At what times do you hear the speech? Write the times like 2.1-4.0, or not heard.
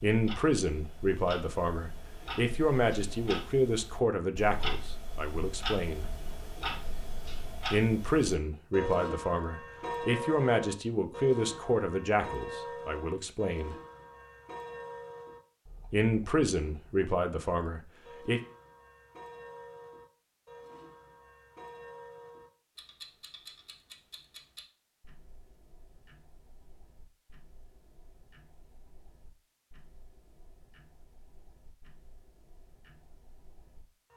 0.0-6.0, 7.7-13.8, 15.9-18.4.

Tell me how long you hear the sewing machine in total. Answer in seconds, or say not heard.
not heard.